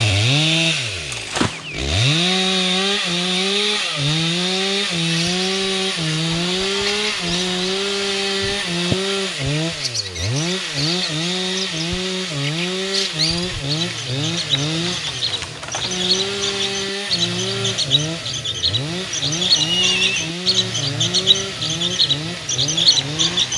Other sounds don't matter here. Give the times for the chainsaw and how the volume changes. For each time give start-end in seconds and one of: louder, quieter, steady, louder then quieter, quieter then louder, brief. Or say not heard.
0.0-23.5 quieter.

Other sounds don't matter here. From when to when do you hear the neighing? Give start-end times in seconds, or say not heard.
19.6-20.3.